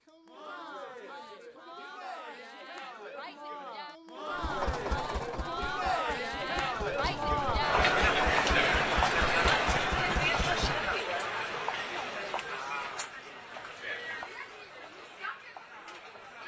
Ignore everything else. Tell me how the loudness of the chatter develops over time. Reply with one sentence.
The volume of the chatter goes up, then down.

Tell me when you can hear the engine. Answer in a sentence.
You can hear the engine from 4.3 to 10.9 s.